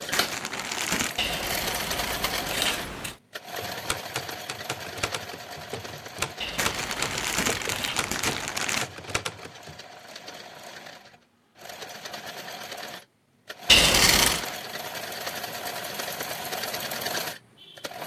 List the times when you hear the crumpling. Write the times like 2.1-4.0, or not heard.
0.1-1.2, 6.5-8.9, 14.2-14.7.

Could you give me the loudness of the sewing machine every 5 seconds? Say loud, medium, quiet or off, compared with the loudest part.
loud, medium, medium, loud.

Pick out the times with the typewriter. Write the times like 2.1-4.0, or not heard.
3.5-9.8.